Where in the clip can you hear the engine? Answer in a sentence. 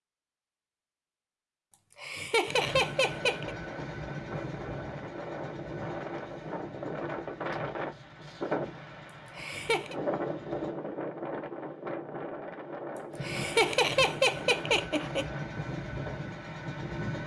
You can hear the engine from 2.5 to 10.8 s and from 13.1 to 17.2 s.